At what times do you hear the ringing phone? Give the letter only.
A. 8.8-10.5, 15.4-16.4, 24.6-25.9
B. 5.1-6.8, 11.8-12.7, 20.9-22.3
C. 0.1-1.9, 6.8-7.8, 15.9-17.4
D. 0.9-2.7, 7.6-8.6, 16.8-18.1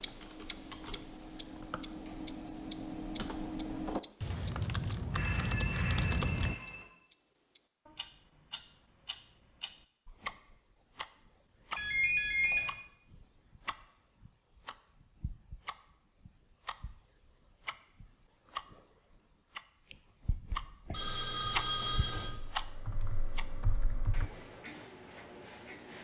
B.